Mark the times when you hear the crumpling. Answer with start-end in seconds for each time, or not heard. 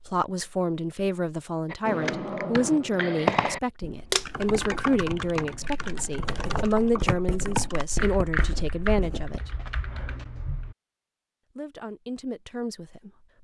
4.1-5.0.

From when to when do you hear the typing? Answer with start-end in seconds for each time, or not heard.
1.7-10.8.